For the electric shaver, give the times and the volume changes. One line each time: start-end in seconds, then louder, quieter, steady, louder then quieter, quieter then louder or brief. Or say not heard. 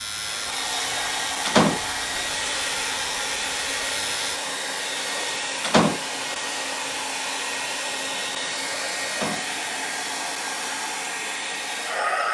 0.0-4.4 steady.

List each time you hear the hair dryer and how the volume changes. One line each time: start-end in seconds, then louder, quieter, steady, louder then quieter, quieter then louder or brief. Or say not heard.
0.0-12.2 steady.